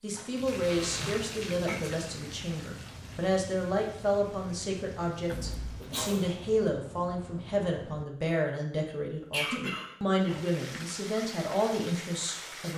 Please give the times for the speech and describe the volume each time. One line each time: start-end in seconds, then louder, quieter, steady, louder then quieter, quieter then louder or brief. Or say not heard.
0.0-12.7 steady.